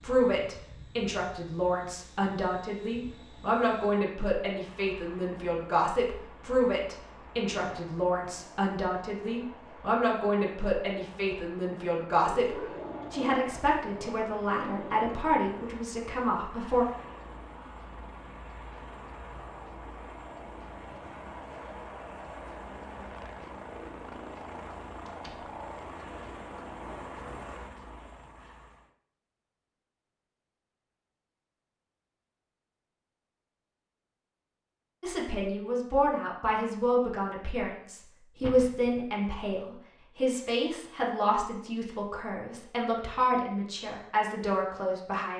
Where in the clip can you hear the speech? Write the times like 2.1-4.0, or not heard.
0.0-16.9, 35.0-45.3.